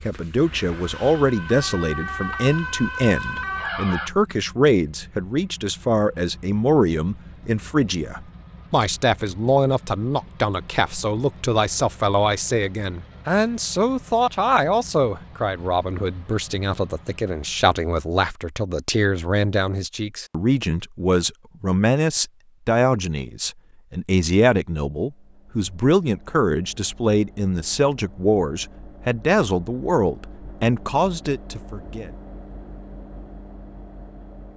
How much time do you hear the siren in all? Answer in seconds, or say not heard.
4 s.